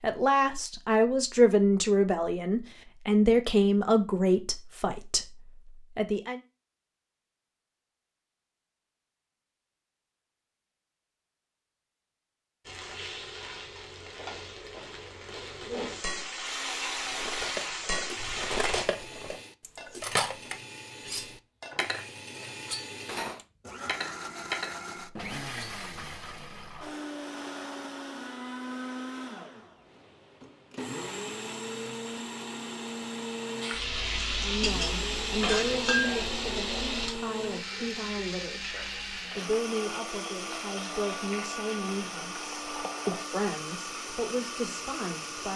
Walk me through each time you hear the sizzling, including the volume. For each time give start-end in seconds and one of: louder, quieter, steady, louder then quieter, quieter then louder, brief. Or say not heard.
12.7-18.9 louder
33.6-45.5 quieter.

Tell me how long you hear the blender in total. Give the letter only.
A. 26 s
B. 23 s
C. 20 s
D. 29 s
D.